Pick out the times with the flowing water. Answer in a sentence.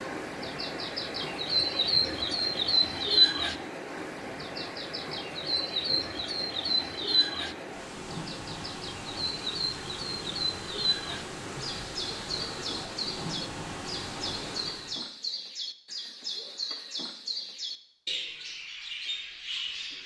The flowing water can be heard from 0.0 to 15.1 s.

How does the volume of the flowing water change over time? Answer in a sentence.
The loudness of the flowing water stays about the same.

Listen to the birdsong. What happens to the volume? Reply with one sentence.
The loudness of the birdsong goes down.